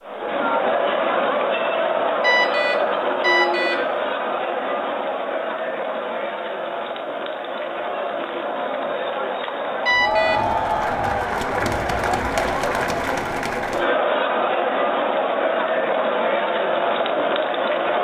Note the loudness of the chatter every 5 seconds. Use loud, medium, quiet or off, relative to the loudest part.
loud, medium, loud, loud.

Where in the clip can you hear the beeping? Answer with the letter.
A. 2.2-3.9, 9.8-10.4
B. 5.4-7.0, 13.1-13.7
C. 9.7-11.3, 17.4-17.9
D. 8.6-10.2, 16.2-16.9
A.